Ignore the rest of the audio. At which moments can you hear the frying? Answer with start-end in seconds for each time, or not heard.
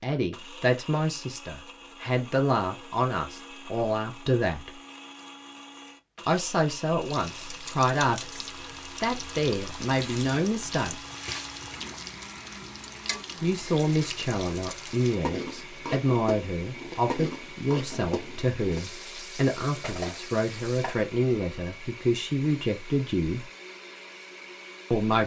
7.0-21.1.